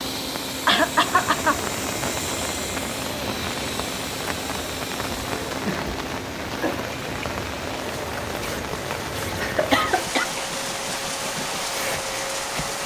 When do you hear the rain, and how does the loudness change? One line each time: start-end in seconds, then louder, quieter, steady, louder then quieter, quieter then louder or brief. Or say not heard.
0.0-12.8 steady.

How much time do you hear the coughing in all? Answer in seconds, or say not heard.
3 s.